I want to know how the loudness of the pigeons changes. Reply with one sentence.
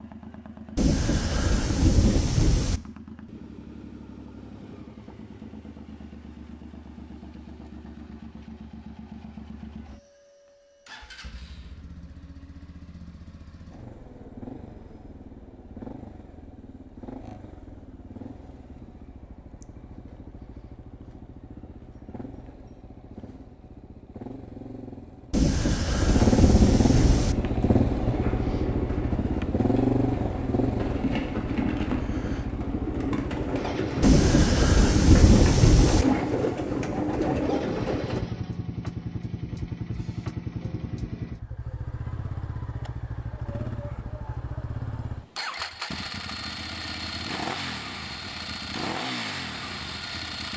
The loudness of the pigeons goes up.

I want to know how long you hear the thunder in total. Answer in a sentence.
The thunder can be heard for 6 seconds in total.